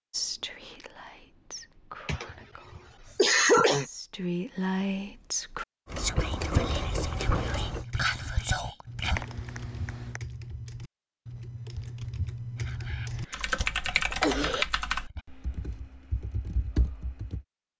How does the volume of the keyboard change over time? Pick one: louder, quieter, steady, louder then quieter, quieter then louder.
louder then quieter.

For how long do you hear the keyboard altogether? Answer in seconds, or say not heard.
11 s.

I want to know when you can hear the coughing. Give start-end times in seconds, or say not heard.
2.0-3.9, 9.2-10.2, 13.1-14.7.